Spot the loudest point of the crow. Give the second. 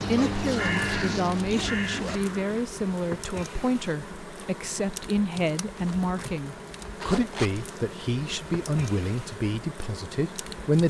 1 s.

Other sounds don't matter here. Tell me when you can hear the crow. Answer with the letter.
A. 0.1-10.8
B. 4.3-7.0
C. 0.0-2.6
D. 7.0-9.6
C.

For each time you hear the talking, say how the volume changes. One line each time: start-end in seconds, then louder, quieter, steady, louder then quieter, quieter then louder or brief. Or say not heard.
0.1-10.8 steady.